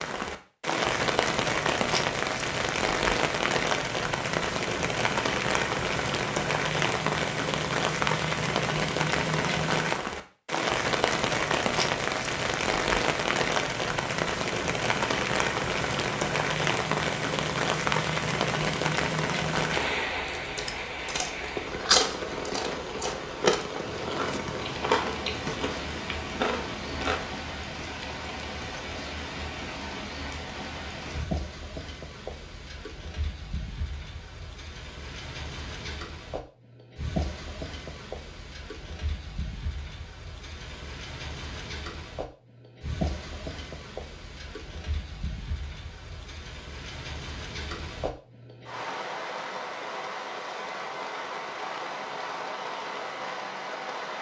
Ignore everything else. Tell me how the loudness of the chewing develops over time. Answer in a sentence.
The volume of the chewing goes up, then down.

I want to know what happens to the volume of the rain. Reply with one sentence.
The loudness of the rain goes down.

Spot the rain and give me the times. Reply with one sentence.
You can hear the rain from 0.0 to 54.1 s.